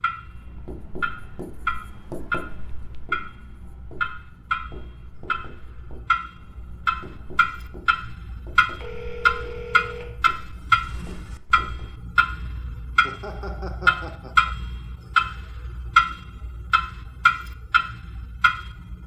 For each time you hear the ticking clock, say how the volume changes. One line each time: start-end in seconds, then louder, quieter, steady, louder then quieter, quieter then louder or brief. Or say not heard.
0.0-19.0 louder.